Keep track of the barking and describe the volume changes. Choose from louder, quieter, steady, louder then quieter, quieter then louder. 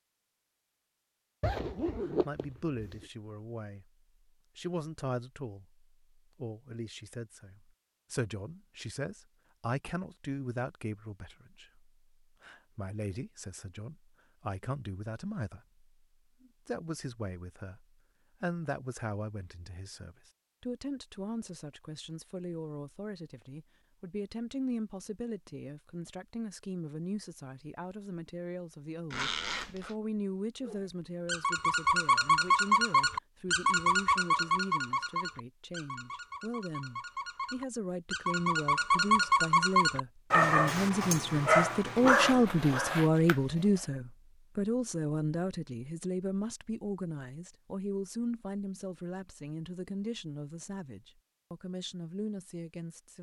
quieter then louder.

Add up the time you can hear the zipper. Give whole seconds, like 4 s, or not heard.
4 s.